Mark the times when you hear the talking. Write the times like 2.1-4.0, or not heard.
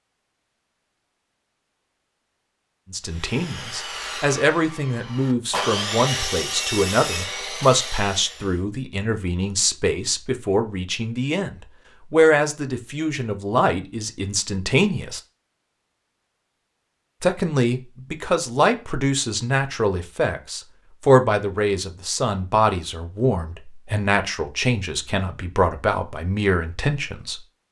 2.9-15.2, 17.2-27.4.